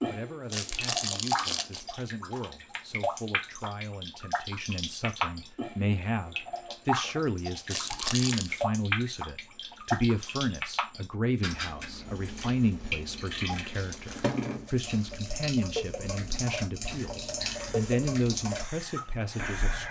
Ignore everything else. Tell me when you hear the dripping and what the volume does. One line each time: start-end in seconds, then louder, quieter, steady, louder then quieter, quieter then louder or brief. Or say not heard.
0.0-19.8 steady.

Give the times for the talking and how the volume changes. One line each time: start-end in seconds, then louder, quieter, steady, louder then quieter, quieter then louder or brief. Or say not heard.
0.1-19.8 louder.